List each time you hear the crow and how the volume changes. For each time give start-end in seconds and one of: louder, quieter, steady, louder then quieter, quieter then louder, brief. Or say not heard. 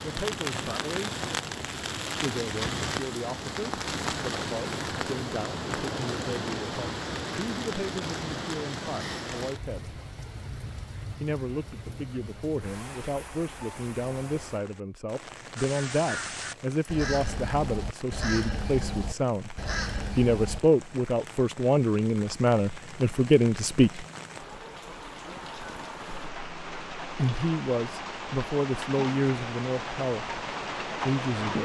15.6-20.6 steady.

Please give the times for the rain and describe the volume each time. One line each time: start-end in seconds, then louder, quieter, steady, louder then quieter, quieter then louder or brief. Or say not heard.
0.0-31.5 quieter then louder.